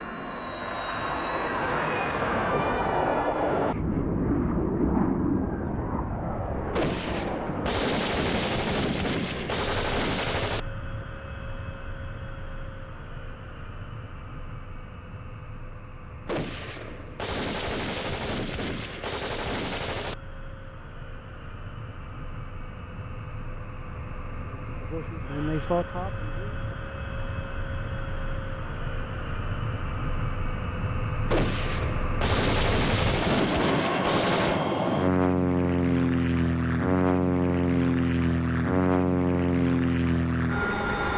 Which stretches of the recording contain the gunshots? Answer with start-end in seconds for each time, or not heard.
6.7-10.6, 16.2-20.1, 31.2-34.6.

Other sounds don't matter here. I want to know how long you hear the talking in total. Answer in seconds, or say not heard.
2 s.